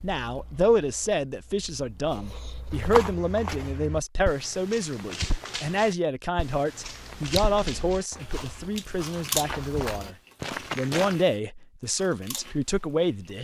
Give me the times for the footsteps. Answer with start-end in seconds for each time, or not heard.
2.7-11.2.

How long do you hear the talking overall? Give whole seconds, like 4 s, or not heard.
13 s.